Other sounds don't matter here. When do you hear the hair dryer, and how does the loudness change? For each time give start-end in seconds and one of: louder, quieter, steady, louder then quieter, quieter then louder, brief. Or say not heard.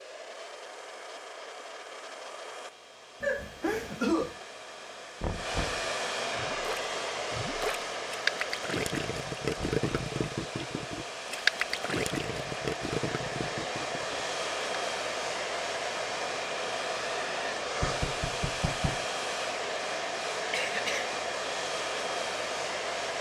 0.0-23.1 louder.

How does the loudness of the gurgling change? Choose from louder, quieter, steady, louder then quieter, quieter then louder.
louder then quieter.